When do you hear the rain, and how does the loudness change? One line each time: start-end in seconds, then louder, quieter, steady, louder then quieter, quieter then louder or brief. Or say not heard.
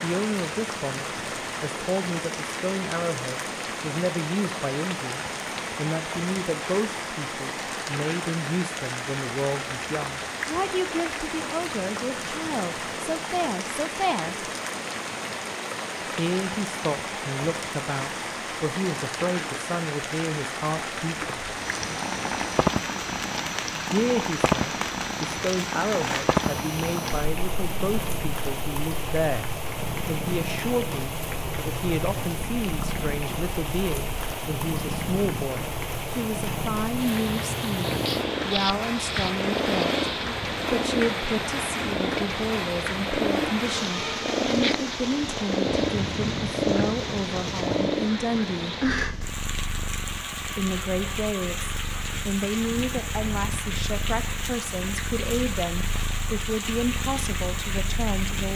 0.0-58.5 steady.